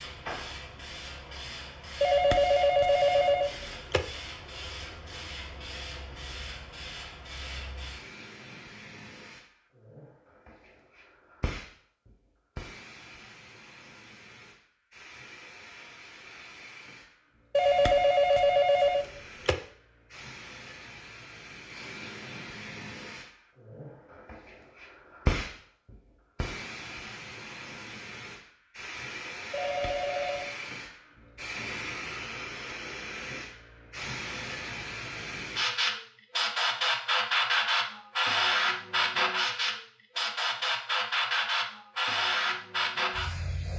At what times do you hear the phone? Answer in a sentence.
You can hear the phone from 2.0 to 4.0 s, from 17.6 to 19.6 s and from 29.5 to 30.5 s.